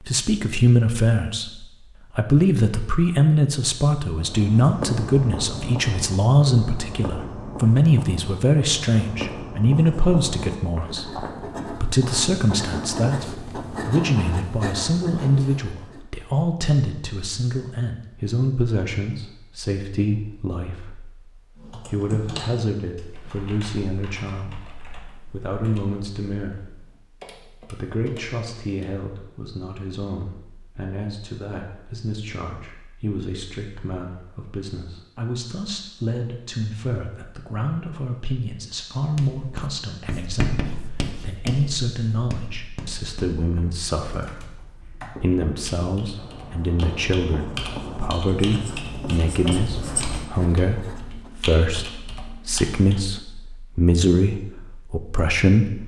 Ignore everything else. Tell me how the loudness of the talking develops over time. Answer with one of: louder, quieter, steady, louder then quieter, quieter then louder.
quieter then louder.